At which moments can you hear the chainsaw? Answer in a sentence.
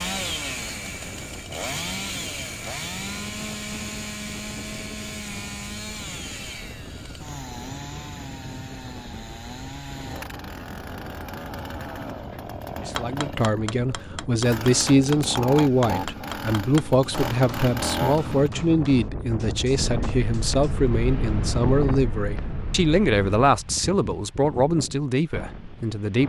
The chainsaw can be heard from 0.0 to 18.5 s.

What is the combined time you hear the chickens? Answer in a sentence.
The chickens can't be heard in this clip.